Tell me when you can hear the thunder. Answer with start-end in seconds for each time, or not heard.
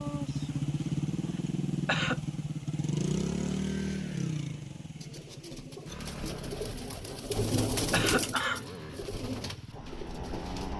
not heard.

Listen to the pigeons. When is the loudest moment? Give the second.
8 s.